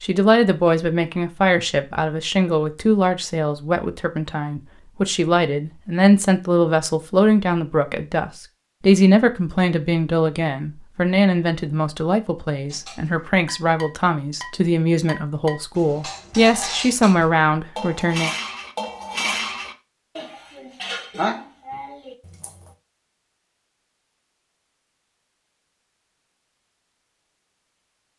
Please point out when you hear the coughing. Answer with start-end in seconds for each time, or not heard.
not heard.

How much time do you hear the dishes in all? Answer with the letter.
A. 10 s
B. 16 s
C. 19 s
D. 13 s
A.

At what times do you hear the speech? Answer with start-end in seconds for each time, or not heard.
0.0-18.3.